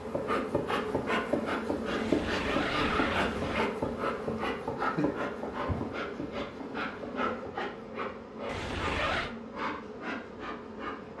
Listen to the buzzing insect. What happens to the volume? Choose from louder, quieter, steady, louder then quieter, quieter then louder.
quieter.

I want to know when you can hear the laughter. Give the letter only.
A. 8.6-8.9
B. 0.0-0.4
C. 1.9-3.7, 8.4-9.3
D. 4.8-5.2
D.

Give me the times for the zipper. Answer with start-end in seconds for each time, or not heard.
1.9-3.7, 8.4-9.3.